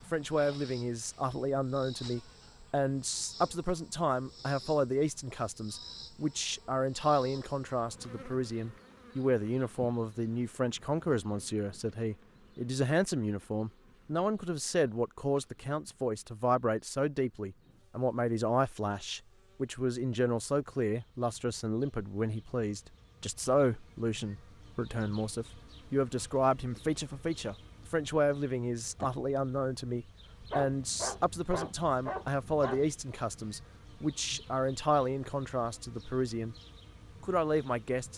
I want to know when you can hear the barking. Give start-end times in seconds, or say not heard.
30.4-32.9.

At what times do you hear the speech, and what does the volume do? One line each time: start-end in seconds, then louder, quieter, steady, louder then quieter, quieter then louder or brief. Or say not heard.
0.1-36.5 steady
37.2-38.1 brief.